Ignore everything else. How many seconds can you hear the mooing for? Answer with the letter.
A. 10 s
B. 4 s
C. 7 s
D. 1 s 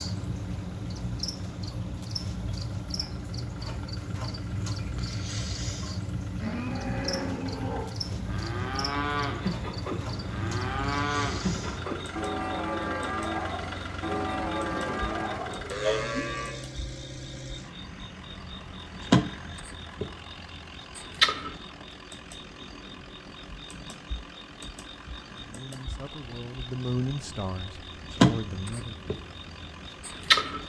A.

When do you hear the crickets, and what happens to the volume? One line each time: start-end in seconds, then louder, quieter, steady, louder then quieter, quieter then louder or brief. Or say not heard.
0.0-30.6 quieter then louder.